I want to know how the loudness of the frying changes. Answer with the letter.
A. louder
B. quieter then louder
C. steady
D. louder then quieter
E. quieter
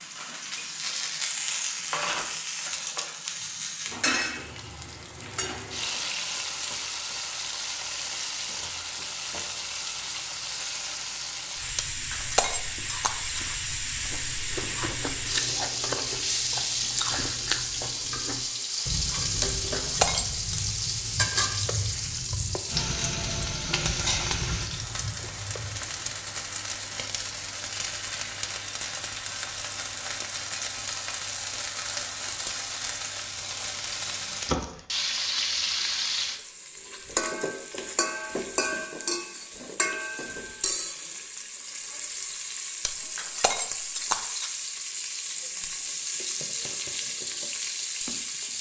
C.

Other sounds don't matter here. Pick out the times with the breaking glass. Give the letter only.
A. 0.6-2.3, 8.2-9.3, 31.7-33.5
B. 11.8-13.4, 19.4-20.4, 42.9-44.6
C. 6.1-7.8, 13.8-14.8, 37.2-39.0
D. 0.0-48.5
B.